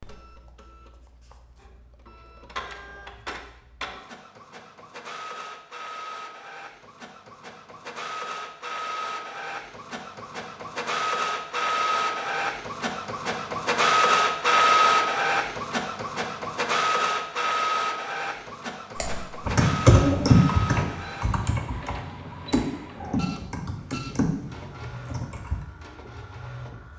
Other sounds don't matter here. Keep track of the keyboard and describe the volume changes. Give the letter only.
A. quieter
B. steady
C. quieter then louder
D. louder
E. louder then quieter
A.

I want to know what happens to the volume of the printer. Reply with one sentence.
The volume of the printer goes up, then down.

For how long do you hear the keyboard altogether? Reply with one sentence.
You can hear the keyboard for 7 seconds altogether.